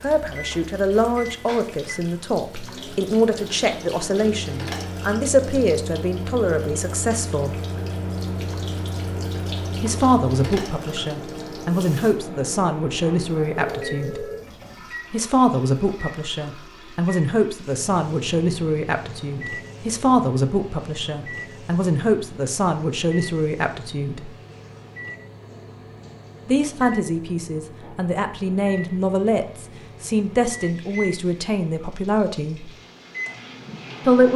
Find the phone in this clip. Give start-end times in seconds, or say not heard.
13.0-14.5.